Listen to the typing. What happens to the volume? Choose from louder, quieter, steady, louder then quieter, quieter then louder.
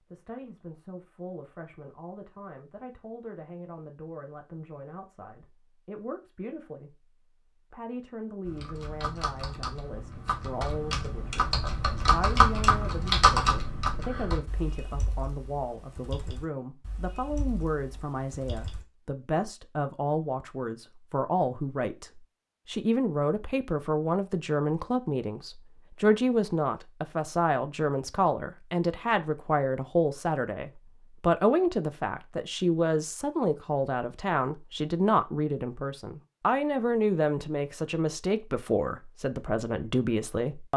louder then quieter.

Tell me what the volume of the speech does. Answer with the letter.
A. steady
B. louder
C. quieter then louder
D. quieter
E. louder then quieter
B.